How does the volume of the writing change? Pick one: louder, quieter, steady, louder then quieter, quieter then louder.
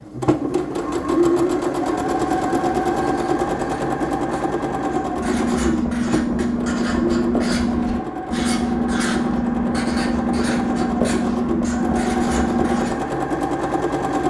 louder.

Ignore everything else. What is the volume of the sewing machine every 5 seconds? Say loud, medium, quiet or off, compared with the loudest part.
loud, medium, loud.